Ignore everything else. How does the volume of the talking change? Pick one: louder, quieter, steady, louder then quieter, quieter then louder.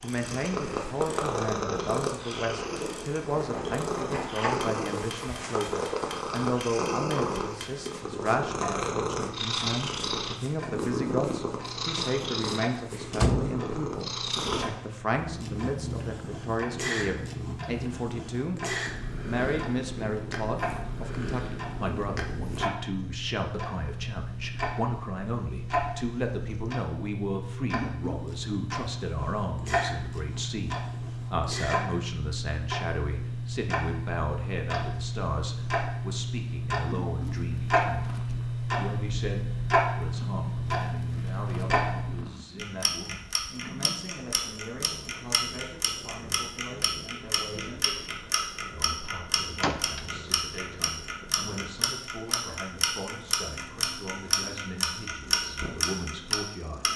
quieter.